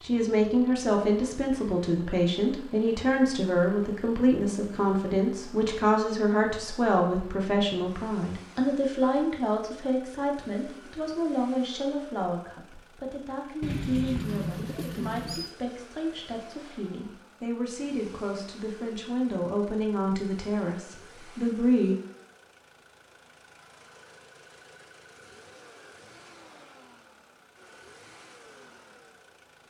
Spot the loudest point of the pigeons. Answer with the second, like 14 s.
14 s.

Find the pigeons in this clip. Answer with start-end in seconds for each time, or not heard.
13.6-15.6.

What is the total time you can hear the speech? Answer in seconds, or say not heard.
22 s.